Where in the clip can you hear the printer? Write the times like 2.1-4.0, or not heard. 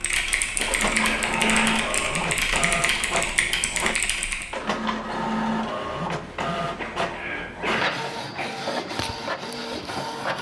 0.0-10.3.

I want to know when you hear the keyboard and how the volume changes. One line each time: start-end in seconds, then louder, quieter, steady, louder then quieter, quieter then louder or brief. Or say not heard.
0.0-4.5 steady.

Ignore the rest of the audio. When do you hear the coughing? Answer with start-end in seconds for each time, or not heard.
0.3-1.9, 6.6-8.5.